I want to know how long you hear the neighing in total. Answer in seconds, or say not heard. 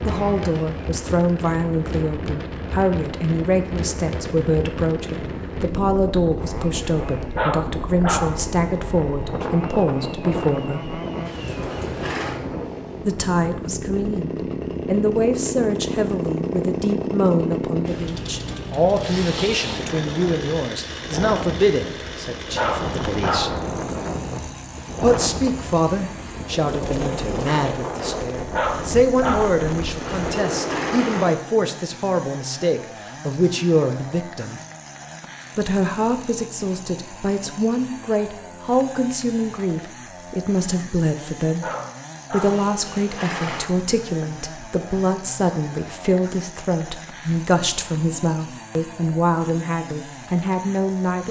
4 s.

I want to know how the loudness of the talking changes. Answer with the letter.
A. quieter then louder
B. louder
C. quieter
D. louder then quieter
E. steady
E.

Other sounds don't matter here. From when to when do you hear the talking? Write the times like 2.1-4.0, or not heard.
0.0-11.0, 13.0-23.6, 25.0-34.6, 35.5-41.7, 42.3-51.2.